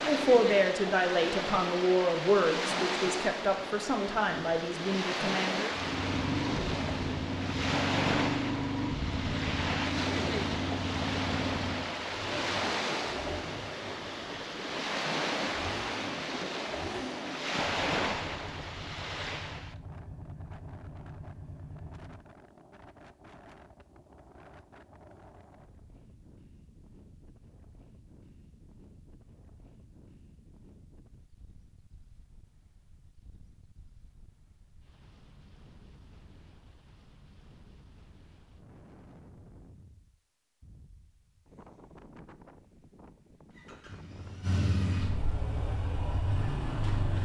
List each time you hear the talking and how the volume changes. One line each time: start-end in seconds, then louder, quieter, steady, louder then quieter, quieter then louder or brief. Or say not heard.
0.0-5.7 quieter.